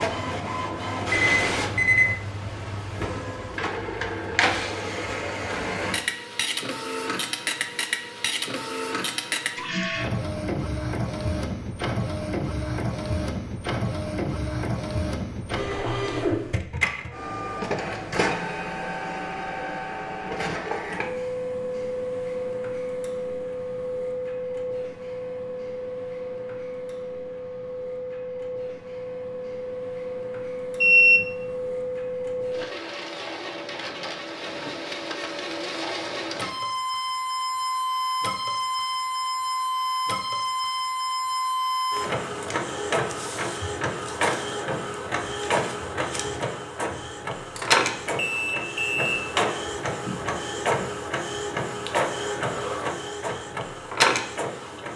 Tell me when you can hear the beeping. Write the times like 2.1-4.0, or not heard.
1.1-2.1, 30.8-31.4, 47.5-49.2.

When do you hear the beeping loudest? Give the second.
31 s.